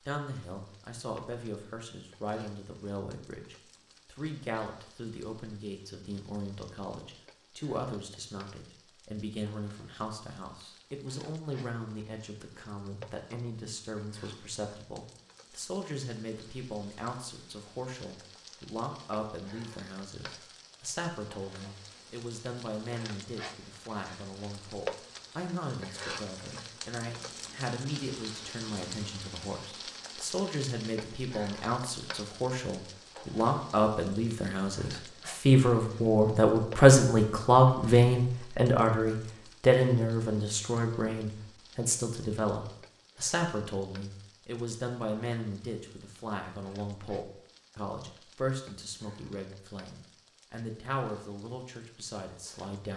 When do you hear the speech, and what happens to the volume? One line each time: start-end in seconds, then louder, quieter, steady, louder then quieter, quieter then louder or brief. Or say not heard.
0.1-52.9 louder then quieter.